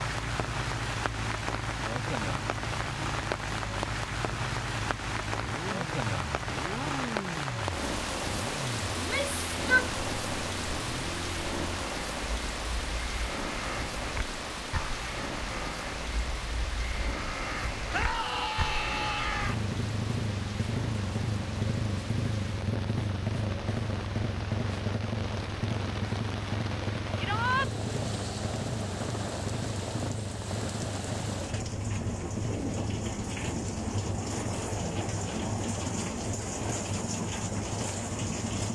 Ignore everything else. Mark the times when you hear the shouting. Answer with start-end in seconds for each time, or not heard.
8.9-9.9, 17.9-19.6, 27.1-27.7.